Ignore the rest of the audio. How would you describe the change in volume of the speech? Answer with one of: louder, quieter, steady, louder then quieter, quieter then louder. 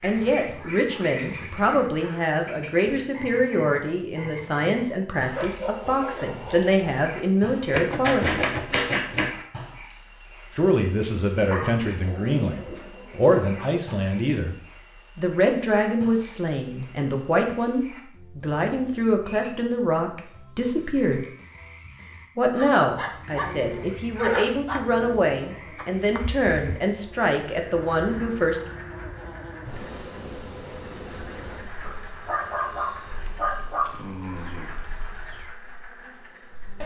steady.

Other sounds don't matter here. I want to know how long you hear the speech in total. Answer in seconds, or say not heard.
25 s.